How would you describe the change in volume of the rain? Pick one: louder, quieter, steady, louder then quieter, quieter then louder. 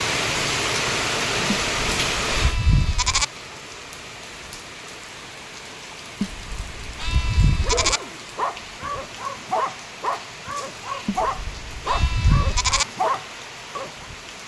quieter.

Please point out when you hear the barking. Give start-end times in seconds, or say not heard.
7.6-14.1.